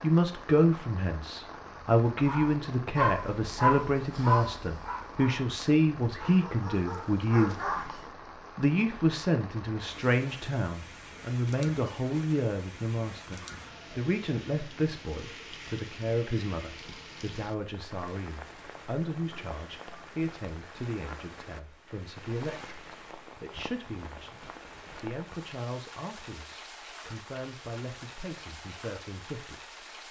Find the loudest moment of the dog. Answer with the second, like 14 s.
4 s.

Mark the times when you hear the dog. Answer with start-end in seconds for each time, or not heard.
2.2-8.1.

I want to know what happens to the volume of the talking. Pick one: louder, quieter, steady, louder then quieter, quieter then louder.
quieter.